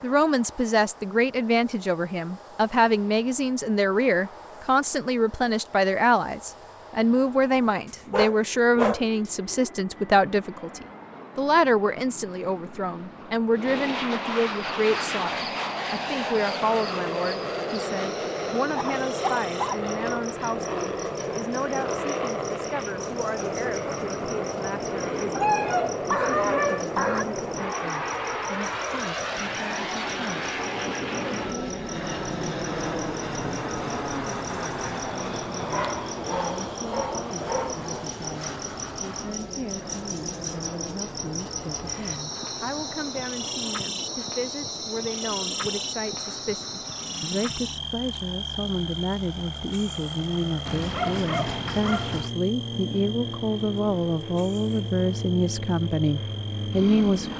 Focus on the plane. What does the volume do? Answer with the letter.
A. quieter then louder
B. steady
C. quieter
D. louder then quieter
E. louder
D.